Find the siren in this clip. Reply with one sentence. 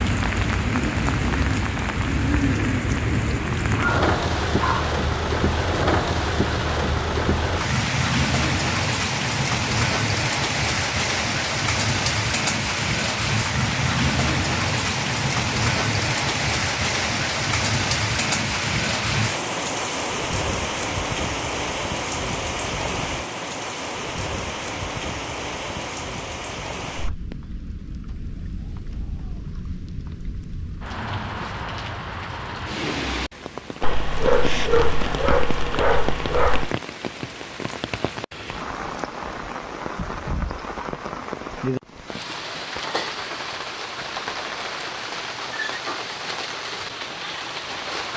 The siren can't be heard in this clip.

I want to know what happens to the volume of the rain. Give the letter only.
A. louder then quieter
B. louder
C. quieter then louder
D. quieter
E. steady
D.